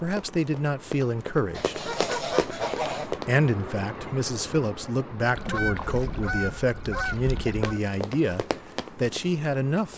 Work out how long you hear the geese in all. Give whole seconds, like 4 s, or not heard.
4 s.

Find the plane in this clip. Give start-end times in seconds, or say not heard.
not heard.